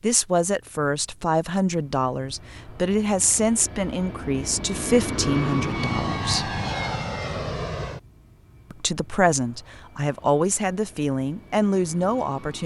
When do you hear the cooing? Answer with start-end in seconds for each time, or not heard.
not heard.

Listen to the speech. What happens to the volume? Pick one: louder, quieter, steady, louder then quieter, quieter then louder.
steady.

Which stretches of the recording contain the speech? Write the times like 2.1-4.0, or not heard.
0.0-6.5, 8.7-12.6.